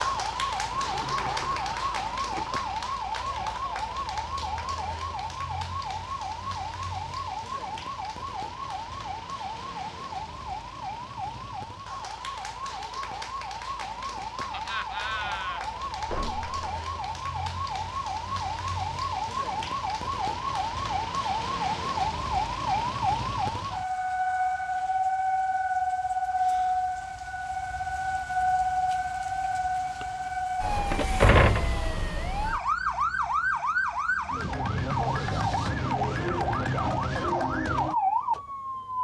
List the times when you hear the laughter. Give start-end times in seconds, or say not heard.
14.5-15.7.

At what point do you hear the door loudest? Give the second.
31 s.